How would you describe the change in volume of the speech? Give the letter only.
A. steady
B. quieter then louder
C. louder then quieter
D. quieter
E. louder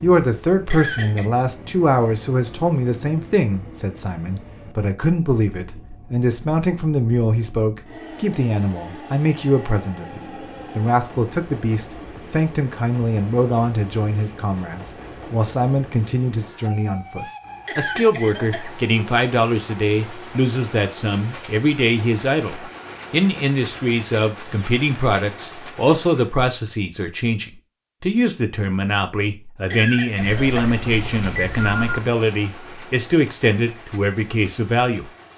A.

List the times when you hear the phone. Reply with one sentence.
The phone can be heard from 30.1 to 32.0 s.